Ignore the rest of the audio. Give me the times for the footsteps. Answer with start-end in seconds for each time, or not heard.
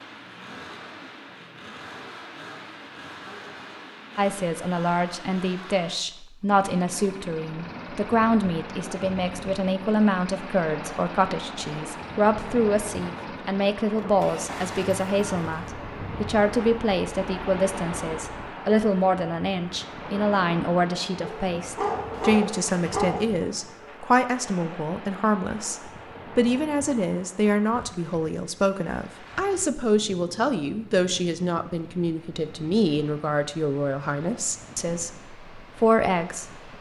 not heard.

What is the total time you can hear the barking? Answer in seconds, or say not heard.
2 s.